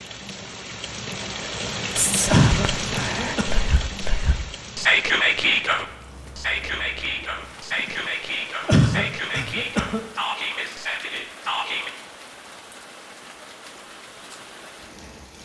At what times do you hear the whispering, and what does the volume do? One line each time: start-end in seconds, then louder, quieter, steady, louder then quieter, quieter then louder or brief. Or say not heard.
1.9-11.9 louder then quieter.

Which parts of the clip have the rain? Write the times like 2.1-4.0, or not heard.
0.0-15.4.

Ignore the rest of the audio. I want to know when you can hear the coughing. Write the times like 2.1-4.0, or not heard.
2.3-3.6, 8.7-10.0.